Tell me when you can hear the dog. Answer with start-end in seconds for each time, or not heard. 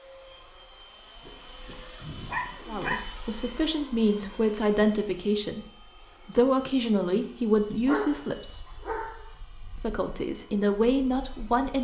1.2-3.0, 7.8-9.2.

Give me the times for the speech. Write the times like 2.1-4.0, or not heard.
2.6-8.7, 9.8-11.8.